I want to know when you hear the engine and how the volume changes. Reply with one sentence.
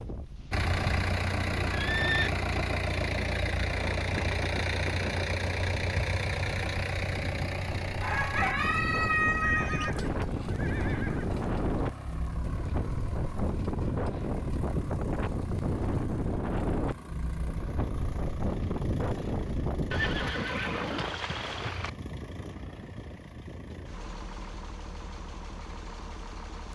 The engine can be heard from 0.0 to 26.7 s, getting quieter.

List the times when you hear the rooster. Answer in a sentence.
The rooster can be heard from 8.0 to 9.9 s.